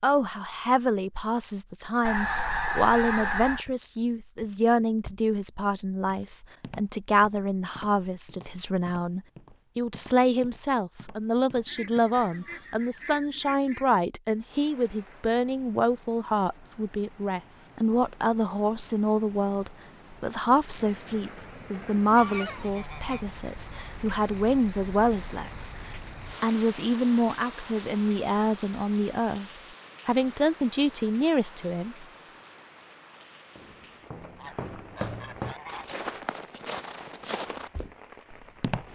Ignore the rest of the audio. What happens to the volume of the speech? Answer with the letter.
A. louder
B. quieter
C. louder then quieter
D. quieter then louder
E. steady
E.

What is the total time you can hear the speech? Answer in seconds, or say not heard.
32 s.